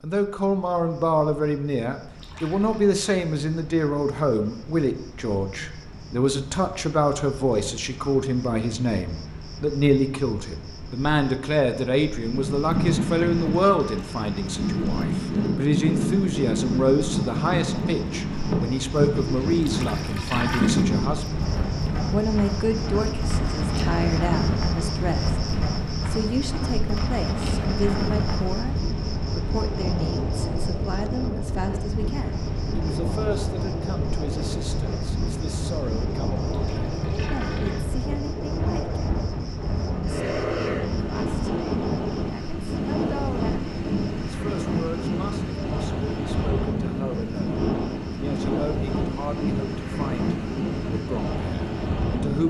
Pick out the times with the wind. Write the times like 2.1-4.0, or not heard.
12.2-52.4.